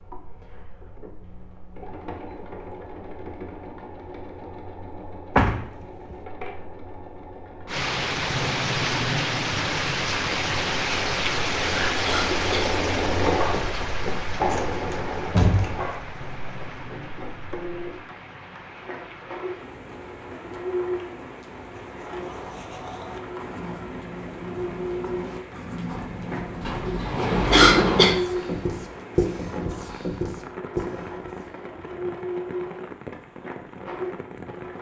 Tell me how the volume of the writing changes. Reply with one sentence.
The volume of the writing goes up.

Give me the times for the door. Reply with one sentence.
You can hear the door from 5.3 to 6.2 s, from 14.5 to 15.9 s and from 25.9 to 28.2 s.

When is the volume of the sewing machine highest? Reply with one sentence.
The volume of the sewing machine peaks at 13 seconds.